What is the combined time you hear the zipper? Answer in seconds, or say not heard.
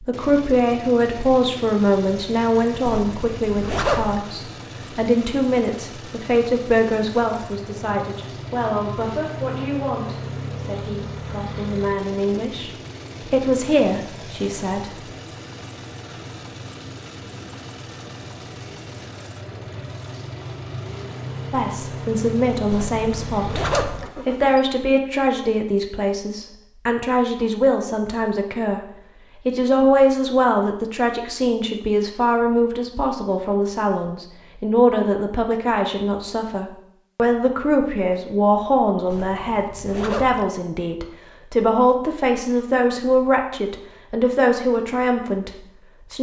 4 s.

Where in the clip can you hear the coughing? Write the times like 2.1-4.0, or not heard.
not heard.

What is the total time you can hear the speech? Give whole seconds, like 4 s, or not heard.
38 s.